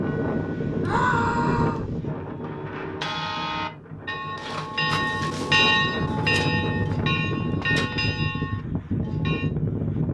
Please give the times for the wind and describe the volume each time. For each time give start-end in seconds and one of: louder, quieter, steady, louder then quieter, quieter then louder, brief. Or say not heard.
0.0-10.0 quieter then louder.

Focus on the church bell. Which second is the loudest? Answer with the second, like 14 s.
6 s.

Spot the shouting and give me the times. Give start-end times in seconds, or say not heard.
0.8-1.9.